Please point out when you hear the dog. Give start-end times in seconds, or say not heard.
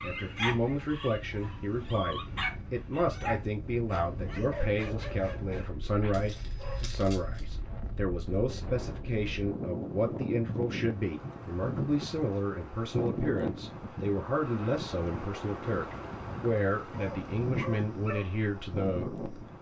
0.0-7.5, 16.9-19.4.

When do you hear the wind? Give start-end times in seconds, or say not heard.
0.0-19.5.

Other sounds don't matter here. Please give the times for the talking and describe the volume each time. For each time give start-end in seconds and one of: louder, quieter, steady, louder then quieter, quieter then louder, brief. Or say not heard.
0.0-19.5 steady.